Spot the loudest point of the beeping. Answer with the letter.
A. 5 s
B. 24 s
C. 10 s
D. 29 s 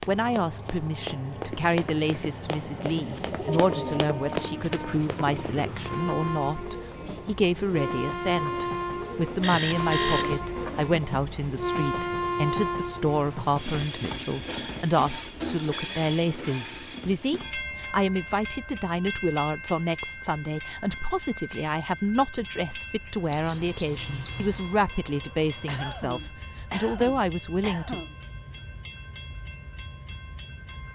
B.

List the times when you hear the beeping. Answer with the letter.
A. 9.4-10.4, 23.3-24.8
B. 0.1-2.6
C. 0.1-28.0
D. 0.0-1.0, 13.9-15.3
A.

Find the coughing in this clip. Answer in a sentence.
You can hear the coughing from 25.6 to 28.1 s.